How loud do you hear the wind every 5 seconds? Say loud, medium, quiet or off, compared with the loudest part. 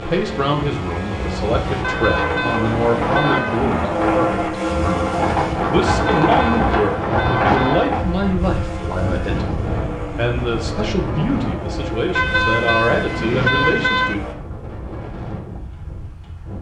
medium, loud, medium, quiet.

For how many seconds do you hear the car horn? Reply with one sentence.
The car horn can be heard for 6 seconds in total.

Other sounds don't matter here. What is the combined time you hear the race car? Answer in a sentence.
The race car can be heard for 14 seconds in total.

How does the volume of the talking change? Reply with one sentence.
The loudness of the talking stays about the same.